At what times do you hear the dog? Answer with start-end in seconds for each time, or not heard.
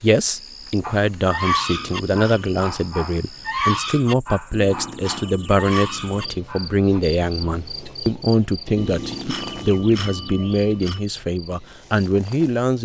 0.8-7.0.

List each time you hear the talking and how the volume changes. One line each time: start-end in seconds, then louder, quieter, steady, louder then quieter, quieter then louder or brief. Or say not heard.
0.0-12.8 steady.